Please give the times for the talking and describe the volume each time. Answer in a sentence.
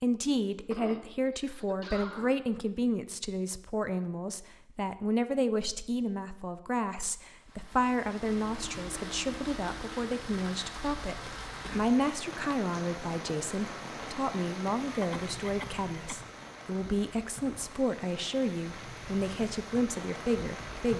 You can hear the talking from 0.0 to 20.9 s, at a steady volume.